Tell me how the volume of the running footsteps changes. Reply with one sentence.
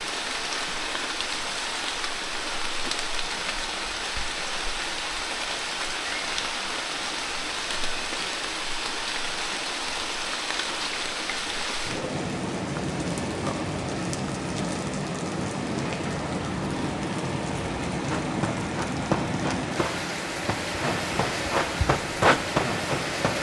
The loudness of the running footsteps goes down, then up.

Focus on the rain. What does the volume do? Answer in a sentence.
The loudness of the rain stays about the same.